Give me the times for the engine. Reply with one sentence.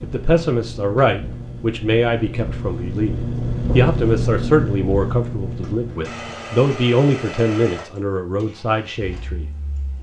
The engine can be heard from 0.0 to 9.9 s.